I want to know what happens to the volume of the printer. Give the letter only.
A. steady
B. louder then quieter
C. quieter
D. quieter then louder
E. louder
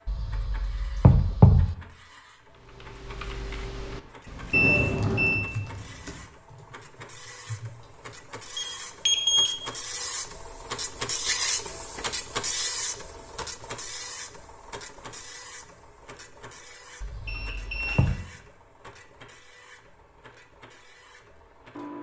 B.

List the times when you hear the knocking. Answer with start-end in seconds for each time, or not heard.
0.1-1.8, 17.0-18.2.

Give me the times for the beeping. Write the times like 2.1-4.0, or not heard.
4.5-5.5, 8.6-9.5, 17.2-18.1.